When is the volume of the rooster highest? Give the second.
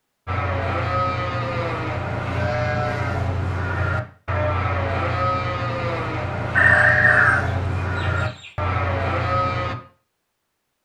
7 s.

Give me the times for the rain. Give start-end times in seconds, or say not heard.
not heard.